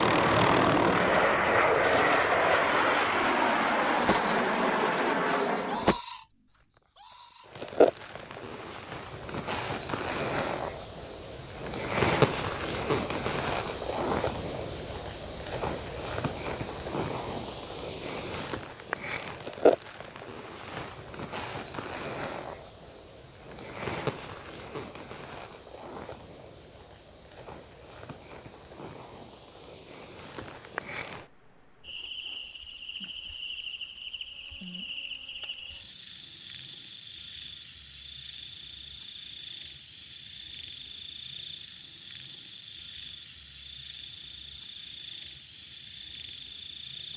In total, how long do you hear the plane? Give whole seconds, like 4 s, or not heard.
6 s.